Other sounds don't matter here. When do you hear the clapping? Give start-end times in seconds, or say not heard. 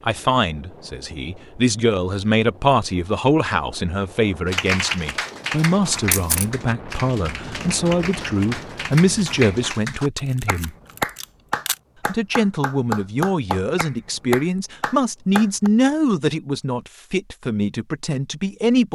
4.5-15.7.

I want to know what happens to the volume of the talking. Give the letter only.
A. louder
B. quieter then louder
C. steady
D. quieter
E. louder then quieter
C.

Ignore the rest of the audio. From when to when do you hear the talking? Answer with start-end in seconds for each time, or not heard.
0.1-10.7, 12.1-18.9.